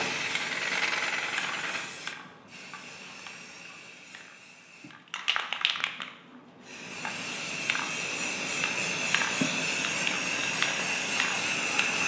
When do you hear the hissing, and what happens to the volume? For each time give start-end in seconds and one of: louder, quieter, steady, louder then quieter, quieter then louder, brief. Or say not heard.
0.0-12.0 quieter then louder.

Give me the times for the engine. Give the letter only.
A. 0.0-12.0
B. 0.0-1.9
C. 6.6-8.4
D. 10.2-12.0
B.